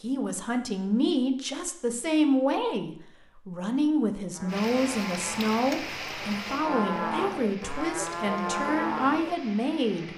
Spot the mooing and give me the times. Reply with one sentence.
The mooing can be heard from 4.3 to 9.3 s.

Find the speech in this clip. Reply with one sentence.
The speech can be heard from 0.0 to 10.1 s.